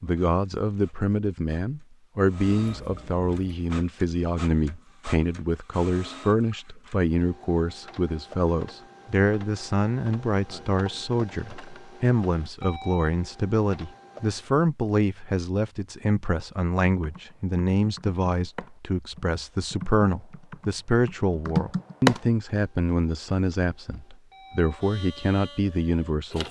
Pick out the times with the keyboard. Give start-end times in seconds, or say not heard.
16.9-22.2.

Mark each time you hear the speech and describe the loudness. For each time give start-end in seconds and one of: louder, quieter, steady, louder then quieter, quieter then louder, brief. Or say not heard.
0.0-26.4 steady.